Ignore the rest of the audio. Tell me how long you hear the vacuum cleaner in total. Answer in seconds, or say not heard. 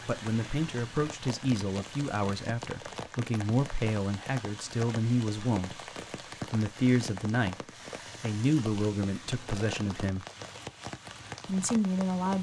not heard.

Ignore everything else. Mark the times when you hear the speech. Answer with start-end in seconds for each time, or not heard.
0.1-5.9, 6.5-10.2, 11.4-12.3.